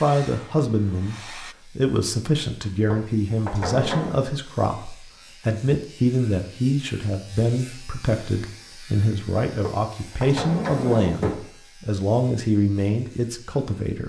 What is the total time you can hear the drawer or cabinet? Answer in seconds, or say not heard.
3 s.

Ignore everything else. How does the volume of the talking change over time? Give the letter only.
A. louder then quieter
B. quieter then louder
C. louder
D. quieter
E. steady
E.